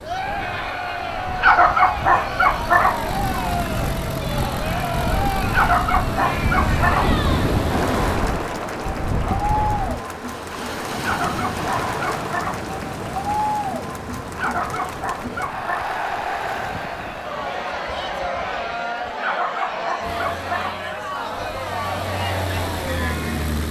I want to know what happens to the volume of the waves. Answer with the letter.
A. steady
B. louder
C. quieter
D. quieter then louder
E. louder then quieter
E.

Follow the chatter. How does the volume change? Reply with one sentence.
The loudness of the chatter stays about the same.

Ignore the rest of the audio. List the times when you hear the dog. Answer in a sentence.
You can hear the dog from 1.4 to 3.0 s, from 5.5 to 7.2 s, from 11.0 to 12.7 s, from 14.3 to 15.8 s and from 19.2 to 20.8 s.